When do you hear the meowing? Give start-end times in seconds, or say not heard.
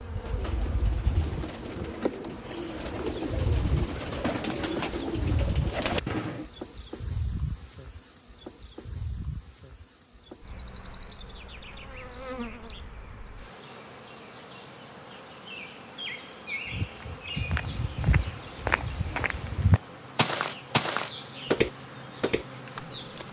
not heard.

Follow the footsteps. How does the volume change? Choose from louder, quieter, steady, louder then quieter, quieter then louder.
louder then quieter.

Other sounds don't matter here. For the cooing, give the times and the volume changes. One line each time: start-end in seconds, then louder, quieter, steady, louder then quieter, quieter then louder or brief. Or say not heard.
0.1-6.5 louder.